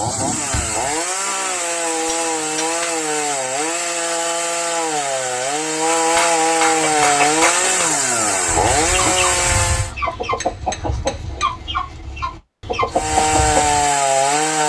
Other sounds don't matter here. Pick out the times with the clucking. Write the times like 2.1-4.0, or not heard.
6.7-13.9.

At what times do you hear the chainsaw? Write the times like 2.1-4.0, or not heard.
0.0-9.9, 12.9-14.6.